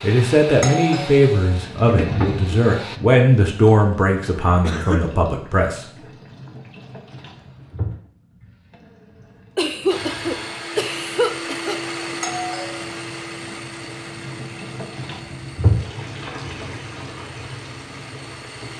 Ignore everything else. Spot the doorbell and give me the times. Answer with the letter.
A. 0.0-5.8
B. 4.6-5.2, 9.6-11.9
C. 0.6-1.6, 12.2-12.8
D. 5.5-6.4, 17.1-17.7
C.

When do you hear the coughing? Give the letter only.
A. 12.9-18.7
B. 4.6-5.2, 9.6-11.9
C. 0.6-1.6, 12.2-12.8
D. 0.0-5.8
B.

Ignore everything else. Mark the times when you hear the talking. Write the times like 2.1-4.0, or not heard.
0.0-5.8.